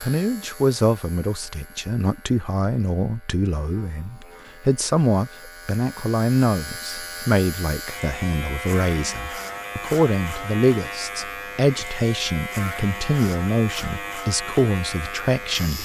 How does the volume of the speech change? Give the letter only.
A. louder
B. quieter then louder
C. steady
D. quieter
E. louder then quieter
C.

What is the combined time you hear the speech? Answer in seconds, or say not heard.
16 s.